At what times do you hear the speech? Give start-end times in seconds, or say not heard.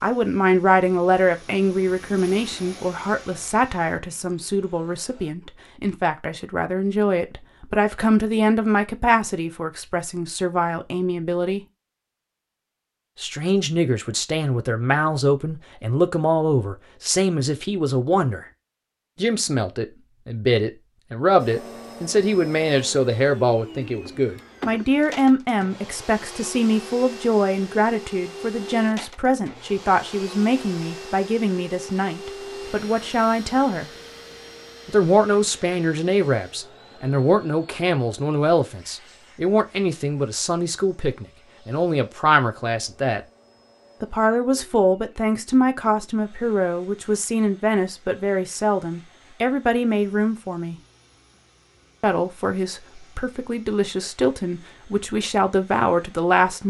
0.0-11.6, 13.2-18.4, 19.1-33.9, 34.9-43.2, 44.0-50.8, 52.0-56.6.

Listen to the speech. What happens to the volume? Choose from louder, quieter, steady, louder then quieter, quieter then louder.
steady.